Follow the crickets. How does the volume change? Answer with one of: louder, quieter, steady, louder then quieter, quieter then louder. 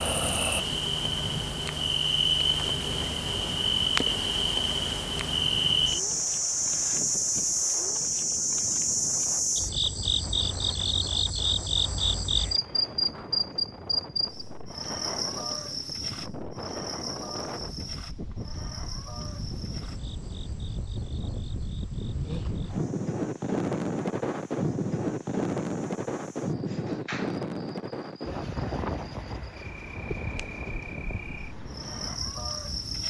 quieter then louder.